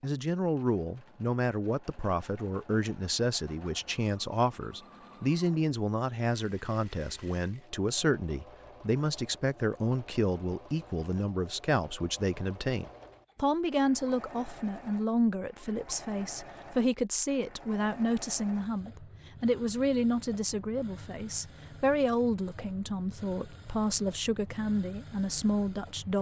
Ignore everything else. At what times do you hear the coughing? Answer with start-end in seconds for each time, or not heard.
not heard.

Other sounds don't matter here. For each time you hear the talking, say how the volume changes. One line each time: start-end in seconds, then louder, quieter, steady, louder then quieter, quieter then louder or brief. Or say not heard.
0.0-26.1 steady.